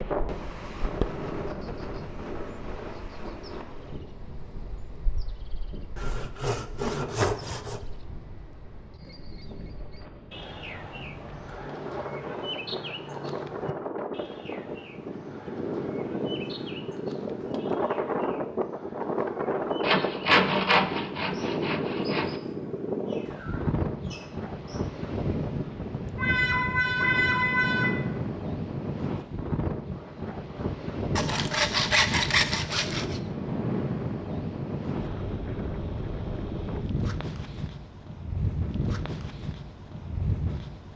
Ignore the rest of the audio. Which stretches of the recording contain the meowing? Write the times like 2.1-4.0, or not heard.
26.1-27.9.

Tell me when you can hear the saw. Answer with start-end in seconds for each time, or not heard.
6.0-7.8, 19.8-22.4, 31.1-33.2.